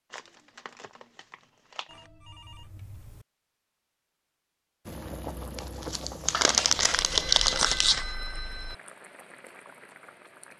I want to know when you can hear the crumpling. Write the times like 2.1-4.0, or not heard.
0.1-2.1, 5.5-8.1.